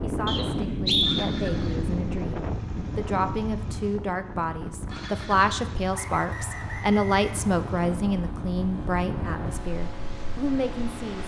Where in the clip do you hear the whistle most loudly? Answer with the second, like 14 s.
1 s.